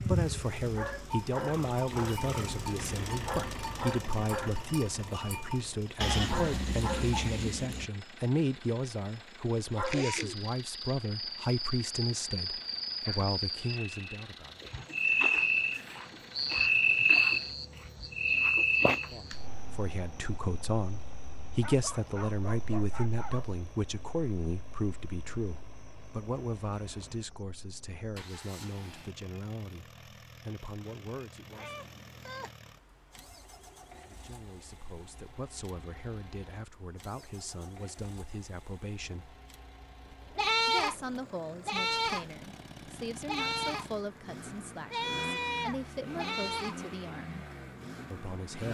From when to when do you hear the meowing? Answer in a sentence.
The meowing can be heard from 31.5 to 32.5 s.